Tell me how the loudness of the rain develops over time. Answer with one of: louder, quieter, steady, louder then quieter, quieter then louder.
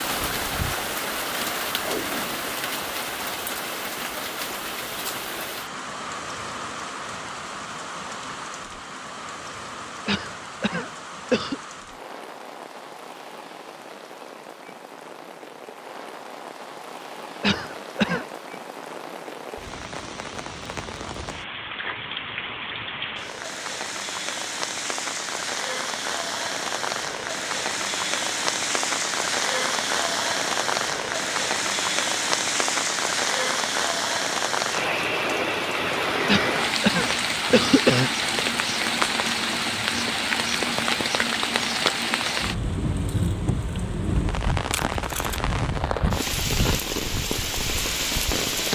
quieter then louder.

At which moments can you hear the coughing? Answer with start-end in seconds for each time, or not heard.
10.1-11.6, 17.4-18.2, 36.2-38.1.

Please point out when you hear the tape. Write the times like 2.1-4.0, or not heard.
1.8-2.5, 44.7-45.4.